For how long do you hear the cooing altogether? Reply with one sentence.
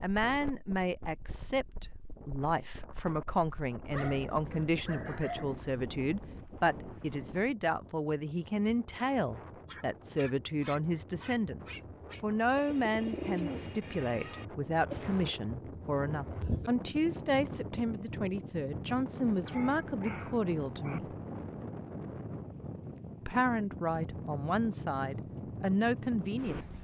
You can hear the cooing for 3 seconds altogether.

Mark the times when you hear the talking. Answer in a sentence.
You can hear the talking from 0.0 to 21.1 s and from 23.2 to 26.7 s.